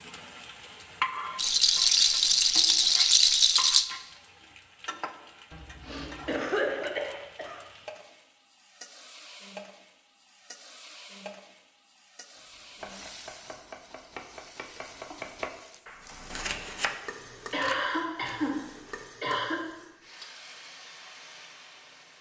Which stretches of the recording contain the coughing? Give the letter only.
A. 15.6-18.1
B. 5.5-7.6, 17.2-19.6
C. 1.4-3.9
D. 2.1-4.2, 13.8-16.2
B.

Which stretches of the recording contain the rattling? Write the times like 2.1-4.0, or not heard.
1.4-3.9.